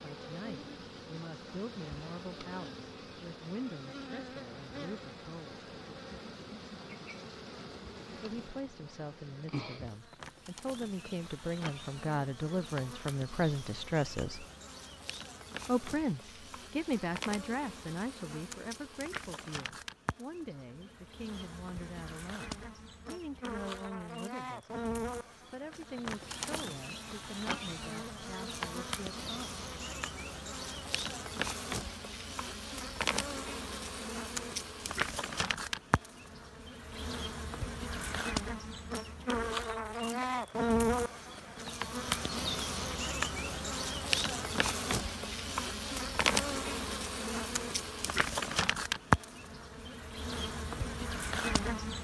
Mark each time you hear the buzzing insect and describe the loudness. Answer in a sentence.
The buzzing insect can be heard from 0.0 to 51.9 s, getting louder.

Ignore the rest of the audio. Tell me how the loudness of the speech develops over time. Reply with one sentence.
The volume of the speech goes up, then down.